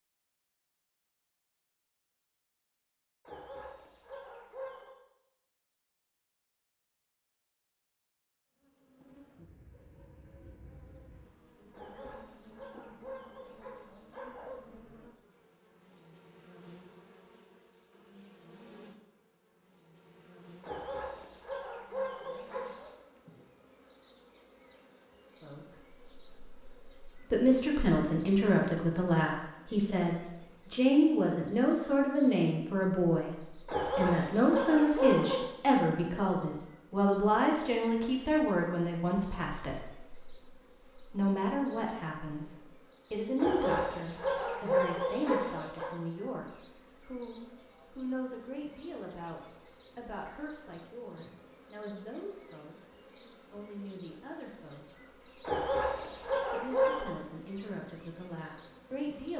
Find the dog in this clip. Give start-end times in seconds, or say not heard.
3.2-5.0, 11.7-14.6, 20.6-22.9, 33.6-35.4, 43.4-45.9, 55.4-57.1.